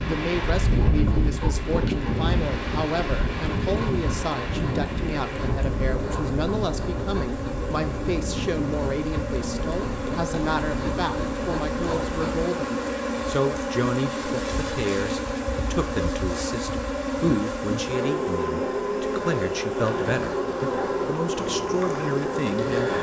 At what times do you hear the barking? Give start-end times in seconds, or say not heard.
not heard.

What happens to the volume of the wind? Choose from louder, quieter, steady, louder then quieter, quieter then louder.
quieter.